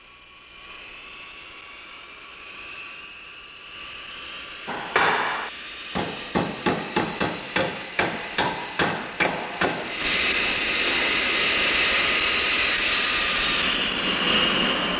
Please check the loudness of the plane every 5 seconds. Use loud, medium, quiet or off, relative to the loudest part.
quiet, quiet, loud.